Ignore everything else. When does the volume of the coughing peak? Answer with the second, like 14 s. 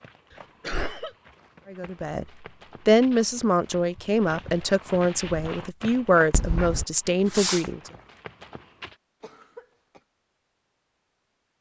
1 s.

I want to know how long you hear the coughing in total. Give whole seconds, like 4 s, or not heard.
2 s.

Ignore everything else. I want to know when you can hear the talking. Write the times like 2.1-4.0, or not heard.
1.6-2.2, 2.9-7.9.